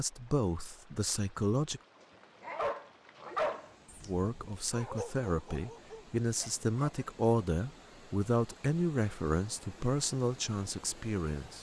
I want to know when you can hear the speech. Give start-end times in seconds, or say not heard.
0.0-1.8, 4.0-11.5.